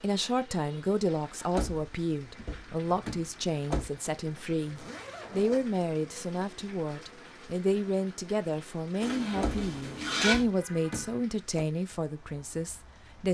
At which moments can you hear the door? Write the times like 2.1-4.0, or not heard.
1.5-3.9, 9.4-11.7.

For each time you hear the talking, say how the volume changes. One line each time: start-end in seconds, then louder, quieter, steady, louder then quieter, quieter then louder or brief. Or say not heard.
0.0-13.2 steady.